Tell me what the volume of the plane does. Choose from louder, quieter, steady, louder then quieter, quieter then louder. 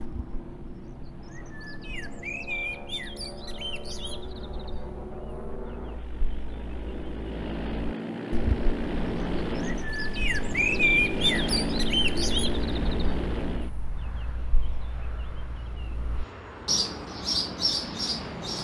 louder then quieter.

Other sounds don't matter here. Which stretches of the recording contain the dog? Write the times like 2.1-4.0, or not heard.
not heard.